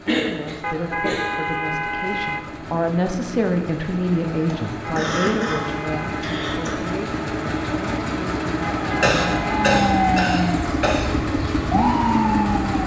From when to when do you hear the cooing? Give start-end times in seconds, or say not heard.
not heard.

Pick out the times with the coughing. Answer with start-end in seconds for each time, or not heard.
0.1-1.4, 4.5-6.8, 9.0-11.1.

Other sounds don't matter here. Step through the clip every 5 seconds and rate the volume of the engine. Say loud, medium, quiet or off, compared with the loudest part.
medium, loud, loud.